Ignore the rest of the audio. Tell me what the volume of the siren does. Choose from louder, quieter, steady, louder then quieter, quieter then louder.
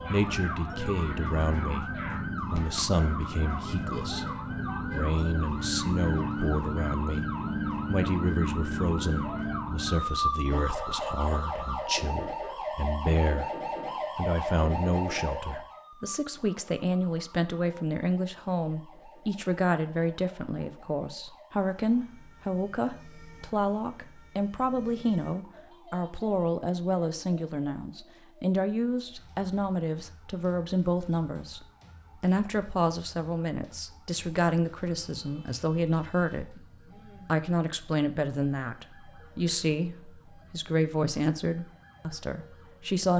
quieter.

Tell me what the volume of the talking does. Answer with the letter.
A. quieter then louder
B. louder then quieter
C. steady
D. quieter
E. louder
C.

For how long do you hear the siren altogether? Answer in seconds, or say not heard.
43 s.